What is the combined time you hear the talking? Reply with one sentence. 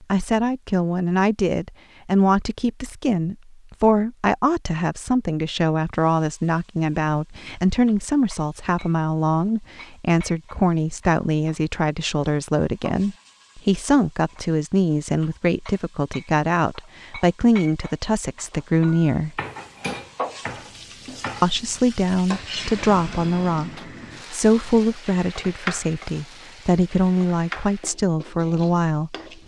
The talking can be heard for 27 seconds in total.